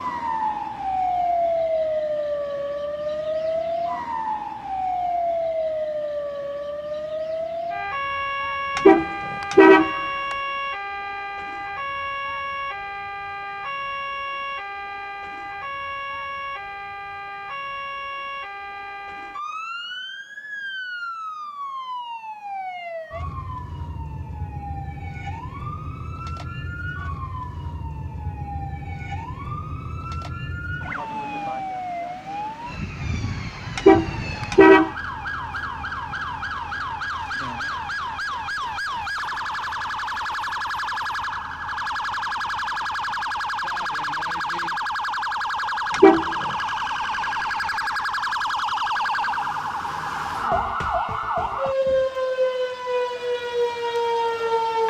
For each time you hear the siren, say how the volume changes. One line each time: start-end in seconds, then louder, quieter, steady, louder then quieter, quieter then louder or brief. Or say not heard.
0.0-54.8 quieter then louder.